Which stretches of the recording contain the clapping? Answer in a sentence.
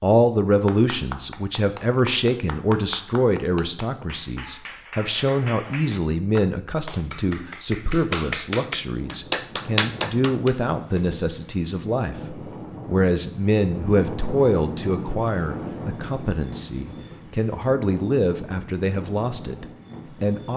You can hear the clapping from 0.5 to 11.1 s.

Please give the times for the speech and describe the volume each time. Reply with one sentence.
You can hear the speech from 0.0 to 20.5 s, at a steady volume.